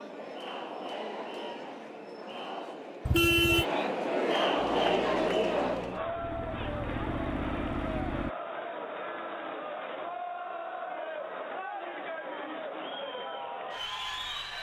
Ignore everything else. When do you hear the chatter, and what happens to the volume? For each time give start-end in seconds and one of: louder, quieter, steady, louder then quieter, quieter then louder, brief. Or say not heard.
0.0-14.5 louder then quieter.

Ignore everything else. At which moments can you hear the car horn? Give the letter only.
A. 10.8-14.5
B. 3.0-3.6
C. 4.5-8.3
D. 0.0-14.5
B.